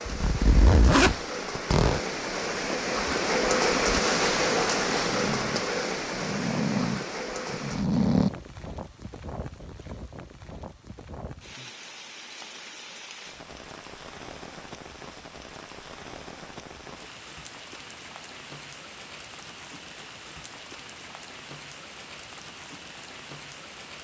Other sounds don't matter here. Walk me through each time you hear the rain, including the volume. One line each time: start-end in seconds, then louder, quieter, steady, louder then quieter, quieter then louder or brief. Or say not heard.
0.0-23.9 quieter.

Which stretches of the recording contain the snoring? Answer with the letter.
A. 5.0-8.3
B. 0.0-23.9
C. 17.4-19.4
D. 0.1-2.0
A.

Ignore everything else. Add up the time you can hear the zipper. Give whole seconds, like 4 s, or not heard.
2 s.